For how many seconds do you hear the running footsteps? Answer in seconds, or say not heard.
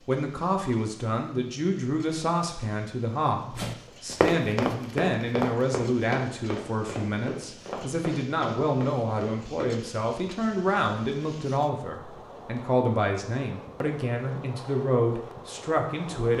6 s.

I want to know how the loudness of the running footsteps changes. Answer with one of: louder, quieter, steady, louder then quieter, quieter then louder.
quieter.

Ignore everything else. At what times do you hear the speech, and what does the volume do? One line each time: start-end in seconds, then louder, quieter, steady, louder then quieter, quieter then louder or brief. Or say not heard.
0.1-16.3 steady.